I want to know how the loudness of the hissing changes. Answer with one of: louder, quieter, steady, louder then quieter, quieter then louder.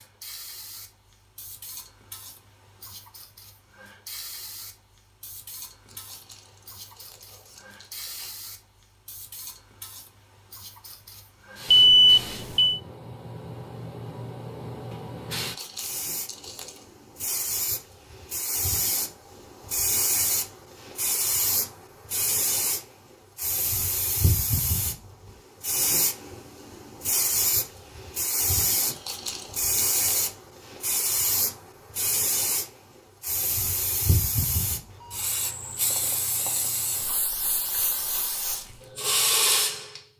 louder.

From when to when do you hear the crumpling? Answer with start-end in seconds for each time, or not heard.
5.8-8.4, 15.3-16.9, 28.8-30.3.